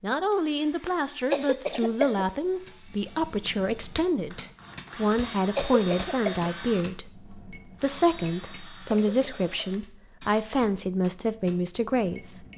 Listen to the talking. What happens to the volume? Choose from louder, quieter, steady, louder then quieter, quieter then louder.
steady.